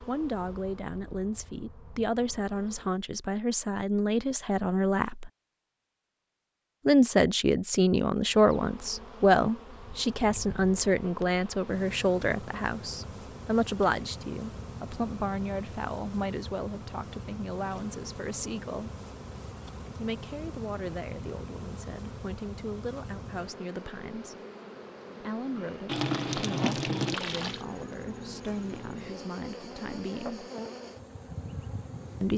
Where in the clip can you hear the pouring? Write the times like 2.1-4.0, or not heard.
25.9-27.6.